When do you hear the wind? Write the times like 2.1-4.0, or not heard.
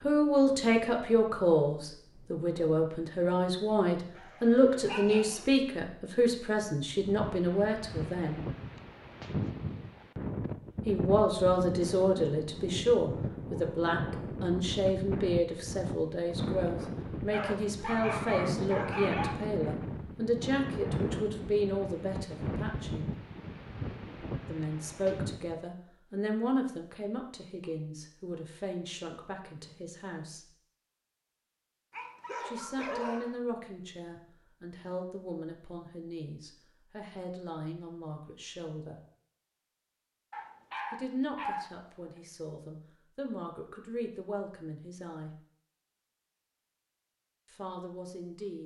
0.0-25.6.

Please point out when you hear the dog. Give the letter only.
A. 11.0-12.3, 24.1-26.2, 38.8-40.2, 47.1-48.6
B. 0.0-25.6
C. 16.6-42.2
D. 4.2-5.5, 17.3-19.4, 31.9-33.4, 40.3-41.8
D.